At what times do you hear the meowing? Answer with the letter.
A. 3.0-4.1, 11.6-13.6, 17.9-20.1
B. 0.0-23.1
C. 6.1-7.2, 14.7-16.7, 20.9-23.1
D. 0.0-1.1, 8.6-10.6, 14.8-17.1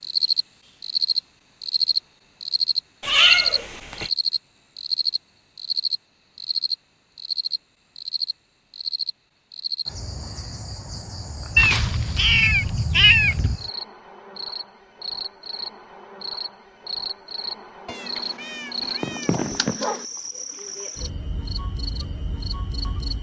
A.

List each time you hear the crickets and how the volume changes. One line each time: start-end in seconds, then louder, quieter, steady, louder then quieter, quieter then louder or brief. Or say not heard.
0.0-23.1 quieter.